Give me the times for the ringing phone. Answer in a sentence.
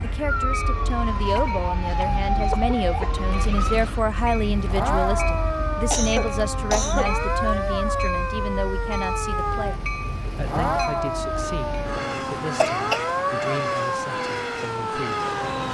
You can't hear the ringing phone here.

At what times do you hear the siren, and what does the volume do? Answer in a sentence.
You can hear the siren from 0.0 to 15.6 s, at a steady volume.